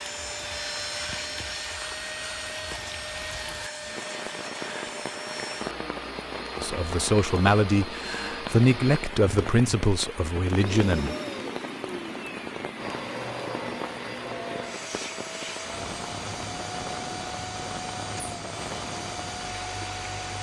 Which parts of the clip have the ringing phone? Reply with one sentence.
The ringing phone can't be heard in this clip.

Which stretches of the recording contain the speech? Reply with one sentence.
The speech can be heard from 6.5 to 11.2 s.